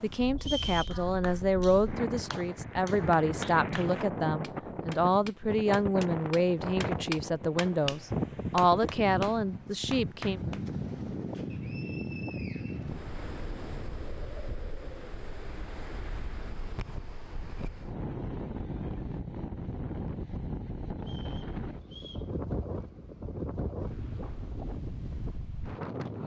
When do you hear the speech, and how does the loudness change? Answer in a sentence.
The speech can be heard from 0.0 to 10.4 s, at a steady volume.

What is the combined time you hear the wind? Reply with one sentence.
The wind can be heard for 26 seconds in total.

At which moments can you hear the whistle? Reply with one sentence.
You can hear the whistle from 0.4 to 1.0 s, from 11.5 to 13.0 s and from 21.0 to 22.3 s.